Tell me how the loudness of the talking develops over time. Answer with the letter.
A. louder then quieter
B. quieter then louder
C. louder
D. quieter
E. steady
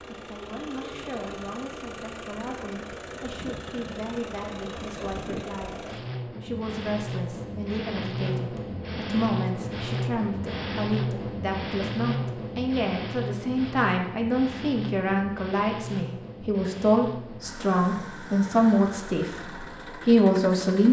C.